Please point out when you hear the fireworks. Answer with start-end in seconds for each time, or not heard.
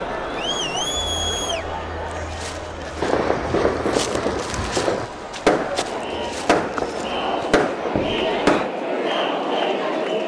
3.0-8.7.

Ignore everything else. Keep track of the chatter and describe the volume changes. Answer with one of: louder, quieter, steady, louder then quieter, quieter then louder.
quieter then louder.